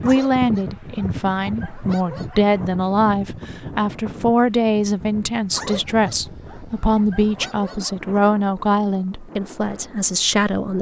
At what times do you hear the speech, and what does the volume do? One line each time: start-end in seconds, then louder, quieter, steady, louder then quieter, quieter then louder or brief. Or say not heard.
0.0-10.7 steady.